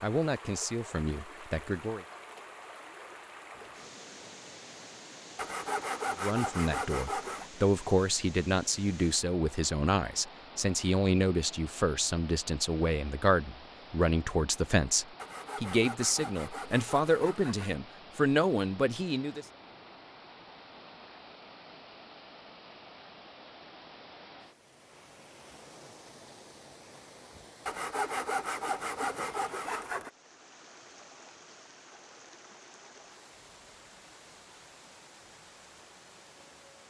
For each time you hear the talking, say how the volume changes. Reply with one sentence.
You can hear the talking briefly from 0.0 to 2.0 s; and from 6.2 to 19.4 s, at a steady volume.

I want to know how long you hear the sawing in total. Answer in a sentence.
The sawing can be heard for 7 seconds in total.